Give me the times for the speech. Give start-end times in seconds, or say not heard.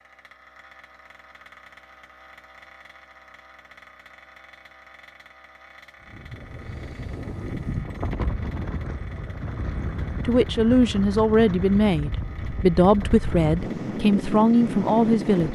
9.8-15.4.